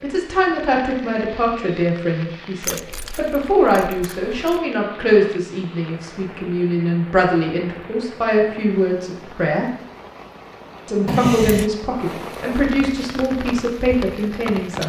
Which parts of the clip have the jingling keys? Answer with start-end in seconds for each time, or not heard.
2.6-4.6, 11.1-11.7.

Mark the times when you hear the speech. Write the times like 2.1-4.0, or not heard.
0.0-9.7, 10.8-14.8.